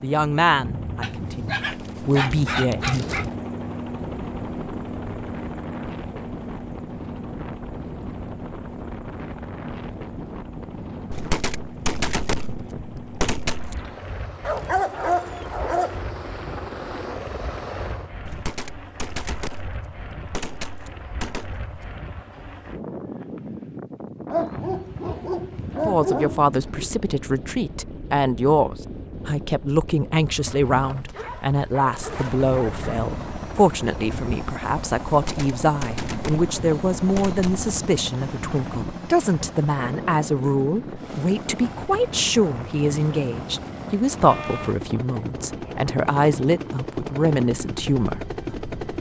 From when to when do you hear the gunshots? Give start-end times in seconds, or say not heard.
11.1-13.8, 18.2-21.9, 35.0-37.6.